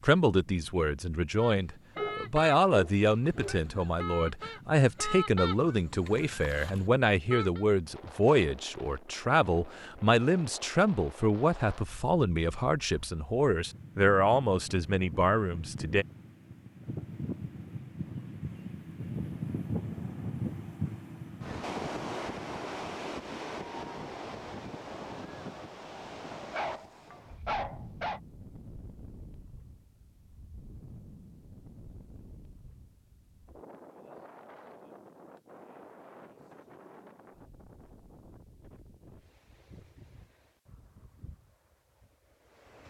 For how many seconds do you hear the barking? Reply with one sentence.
The barking can be heard for 3 seconds in total.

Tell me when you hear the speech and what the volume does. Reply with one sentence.
The speech can be heard from 0.0 to 16.1 s, at a steady volume.